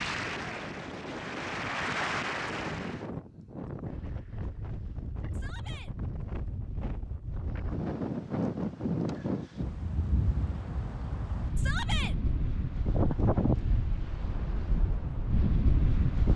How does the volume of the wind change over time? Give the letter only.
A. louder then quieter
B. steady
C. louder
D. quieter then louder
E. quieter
C.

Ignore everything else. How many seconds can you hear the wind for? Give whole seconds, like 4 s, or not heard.
16 s.